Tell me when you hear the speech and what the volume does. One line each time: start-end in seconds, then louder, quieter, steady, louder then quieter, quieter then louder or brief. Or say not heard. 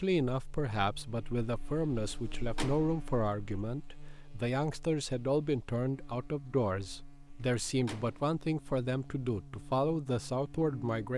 0.0-11.1 steady.